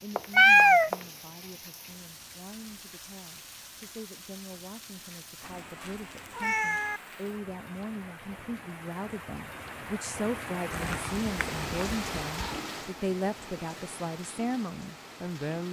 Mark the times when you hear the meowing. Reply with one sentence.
You can hear the meowing from 0.1 to 0.9 s, from 5.4 to 7.0 s and from 10.7 to 12.6 s.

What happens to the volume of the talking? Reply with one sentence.
The loudness of the talking goes up.